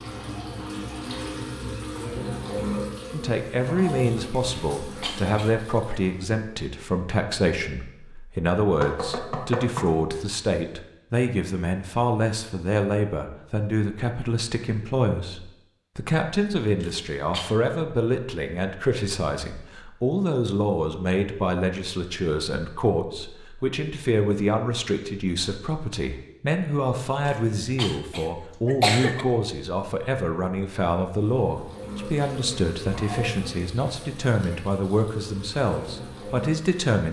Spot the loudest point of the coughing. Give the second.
29 s.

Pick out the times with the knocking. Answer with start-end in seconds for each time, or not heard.
8.8-9.9.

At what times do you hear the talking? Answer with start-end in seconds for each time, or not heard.
3.1-37.0.